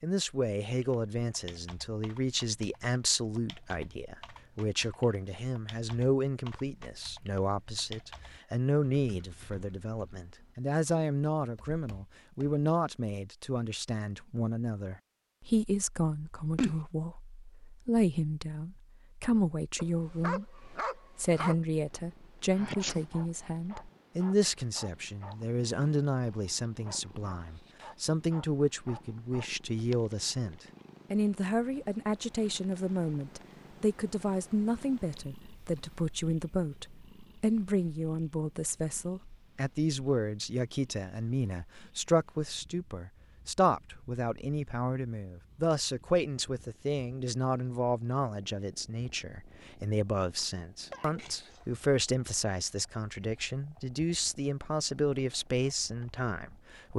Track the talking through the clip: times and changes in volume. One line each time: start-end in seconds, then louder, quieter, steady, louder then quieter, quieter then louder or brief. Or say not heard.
0.0-56.9 steady.